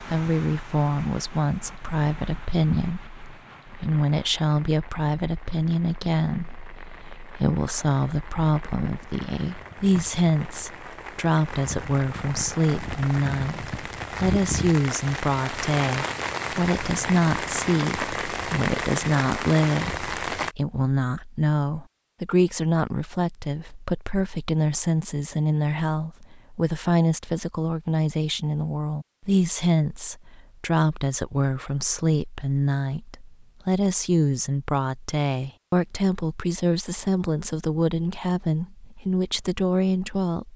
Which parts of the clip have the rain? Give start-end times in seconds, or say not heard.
0.0-20.6.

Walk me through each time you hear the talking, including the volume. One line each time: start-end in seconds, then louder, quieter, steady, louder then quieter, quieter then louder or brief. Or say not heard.
0.0-40.5 steady.